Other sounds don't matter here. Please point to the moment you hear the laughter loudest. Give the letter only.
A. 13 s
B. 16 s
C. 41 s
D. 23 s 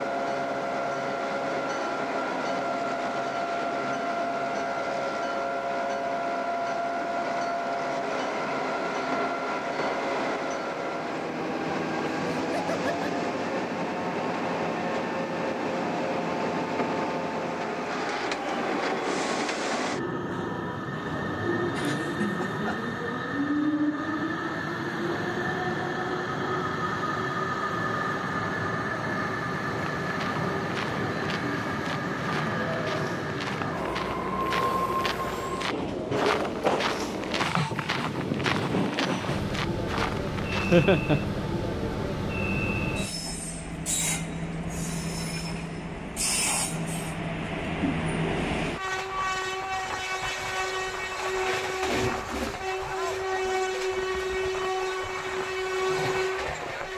C.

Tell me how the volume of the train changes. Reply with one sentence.
The volume of the train stays about the same.